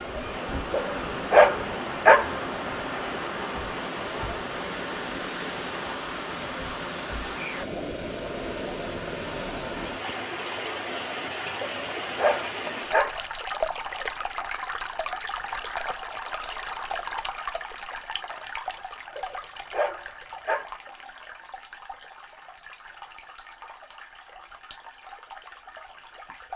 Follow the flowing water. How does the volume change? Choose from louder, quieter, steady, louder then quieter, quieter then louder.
quieter.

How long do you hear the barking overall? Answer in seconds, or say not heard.
5 s.